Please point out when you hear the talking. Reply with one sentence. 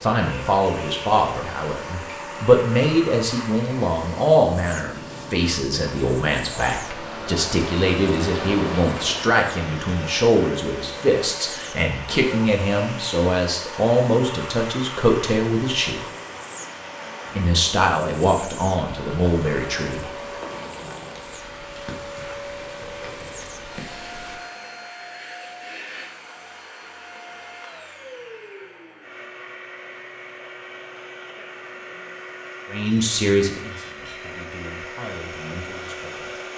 The talking can be heard from 0.0 to 16.1 s, from 17.4 to 20.1 s and from 32.7 to 36.5 s.